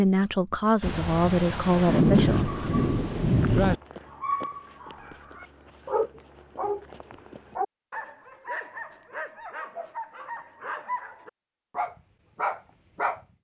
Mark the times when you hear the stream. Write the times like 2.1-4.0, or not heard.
not heard.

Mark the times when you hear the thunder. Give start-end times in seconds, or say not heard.
0.8-3.8.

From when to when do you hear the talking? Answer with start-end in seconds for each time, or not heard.
0.0-2.7.